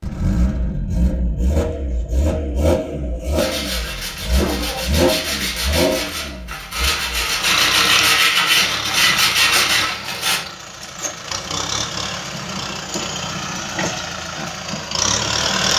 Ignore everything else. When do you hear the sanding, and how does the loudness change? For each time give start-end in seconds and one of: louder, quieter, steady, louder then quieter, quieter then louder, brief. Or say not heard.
3.4-10.4 louder.